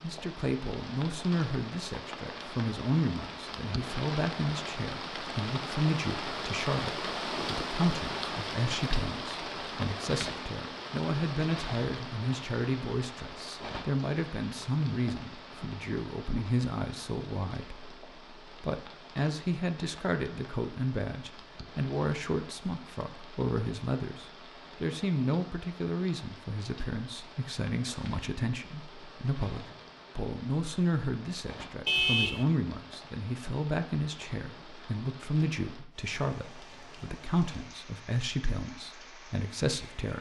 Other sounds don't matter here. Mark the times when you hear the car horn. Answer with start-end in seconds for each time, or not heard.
31.9-32.5.